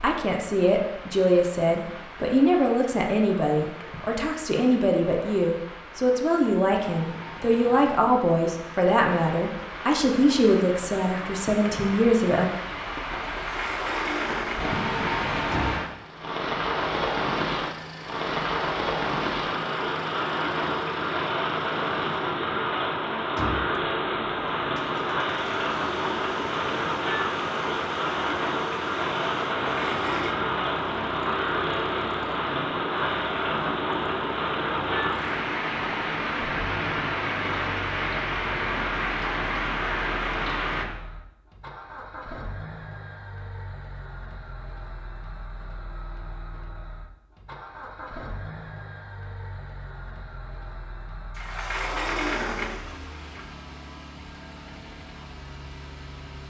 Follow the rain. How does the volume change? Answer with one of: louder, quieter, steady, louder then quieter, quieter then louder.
louder.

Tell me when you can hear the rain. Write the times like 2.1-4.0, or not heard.
0.0-40.9.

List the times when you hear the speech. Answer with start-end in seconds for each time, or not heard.
0.0-12.5.